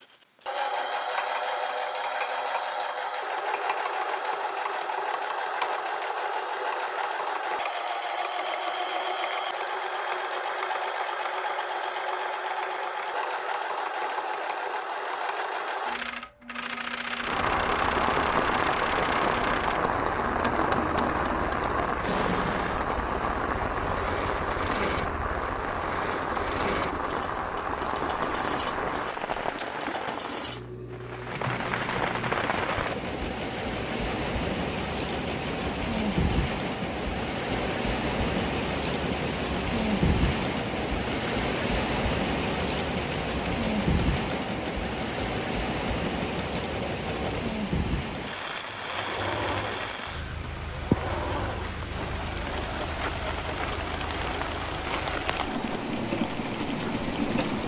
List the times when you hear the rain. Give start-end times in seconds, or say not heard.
17.1-57.6.